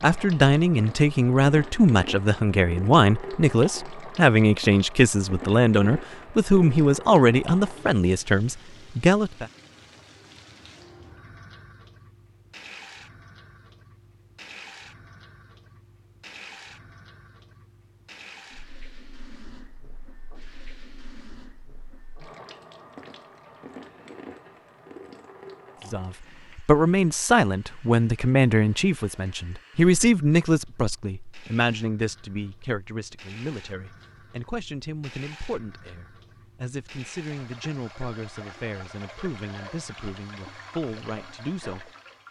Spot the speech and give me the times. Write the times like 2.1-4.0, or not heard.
0.0-9.4, 25.9-41.9.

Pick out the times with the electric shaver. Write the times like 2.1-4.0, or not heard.
not heard.